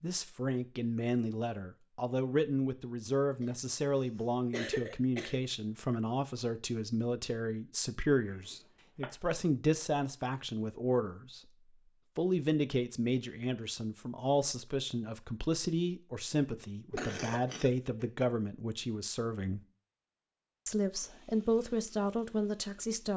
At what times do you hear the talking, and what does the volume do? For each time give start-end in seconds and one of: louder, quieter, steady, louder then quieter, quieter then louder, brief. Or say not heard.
0.0-11.5 steady
12.2-19.6 steady
20.6-23.1 brief.